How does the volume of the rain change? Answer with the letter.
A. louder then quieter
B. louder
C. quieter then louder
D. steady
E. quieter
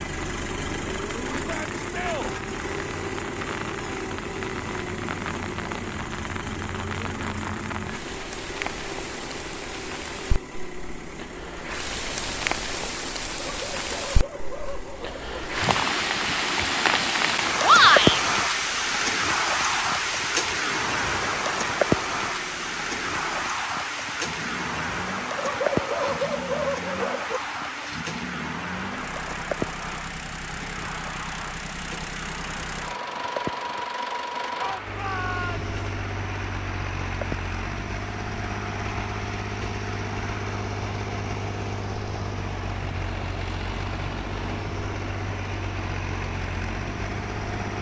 A.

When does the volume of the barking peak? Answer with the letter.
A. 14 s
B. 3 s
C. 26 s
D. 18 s
C.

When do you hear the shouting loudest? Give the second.
18 s.